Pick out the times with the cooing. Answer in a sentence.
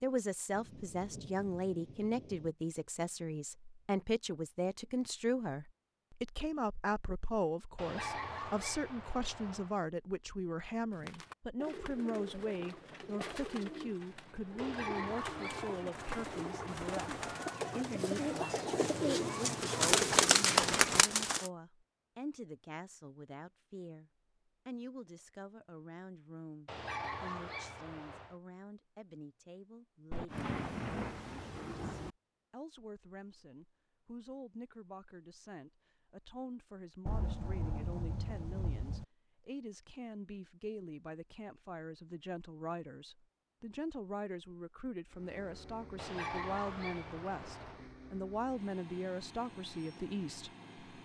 You can hear the cooing from 10.9 to 21.5 s.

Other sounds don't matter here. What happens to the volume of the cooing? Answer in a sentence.
The loudness of the cooing goes up.